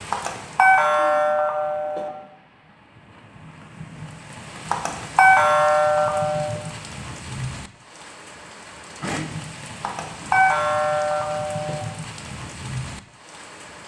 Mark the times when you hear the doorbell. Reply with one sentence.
The doorbell can be heard from 0.1 to 2.1 s, from 4.7 to 6.6 s and from 9.8 to 11.8 s.